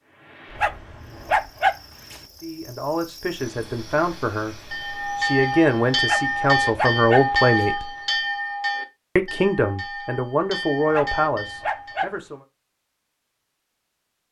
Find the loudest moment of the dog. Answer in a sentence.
The volume of the dog peaks at 2 seconds.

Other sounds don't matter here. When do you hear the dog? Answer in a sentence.
You can hear the dog from 0.6 to 2.2 s, from 6.0 to 7.7 s and from 10.9 to 12.1 s.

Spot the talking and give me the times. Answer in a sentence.
The talking can be heard from 2.4 to 7.9 s and from 9.2 to 12.4 s.